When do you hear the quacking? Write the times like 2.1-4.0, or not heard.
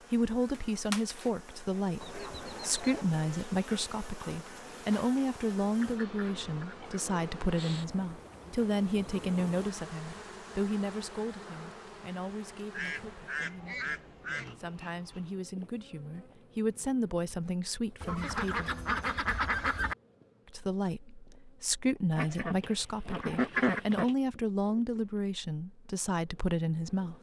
2.0-3.0, 5.8-7.0, 12.7-14.6, 18.0-19.9, 22.1-24.1.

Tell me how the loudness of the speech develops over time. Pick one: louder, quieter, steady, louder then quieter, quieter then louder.
quieter then louder.